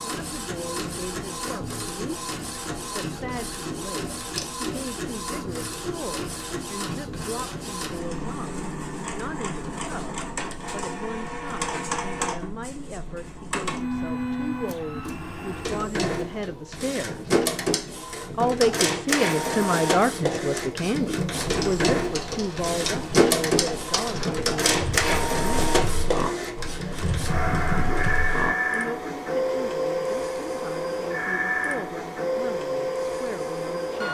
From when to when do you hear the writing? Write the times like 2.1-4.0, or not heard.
not heard.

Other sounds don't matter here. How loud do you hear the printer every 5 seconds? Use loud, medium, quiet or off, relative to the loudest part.
medium, medium, medium, loud, loud, loud, loud.